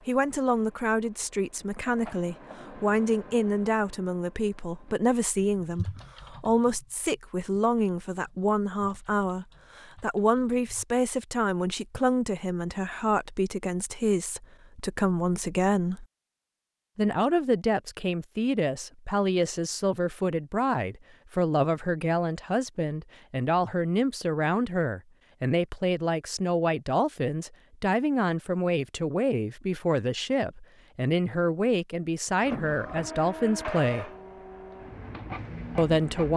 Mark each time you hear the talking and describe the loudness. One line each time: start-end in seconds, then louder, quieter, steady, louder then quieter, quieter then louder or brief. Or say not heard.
0.1-16.1 steady
16.9-34.1 steady
35.8-36.3 brief.